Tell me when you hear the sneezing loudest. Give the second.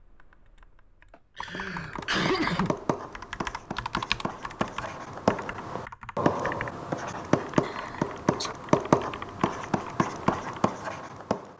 2 s.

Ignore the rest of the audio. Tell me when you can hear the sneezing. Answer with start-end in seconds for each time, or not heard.
1.1-2.8, 7.6-8.6.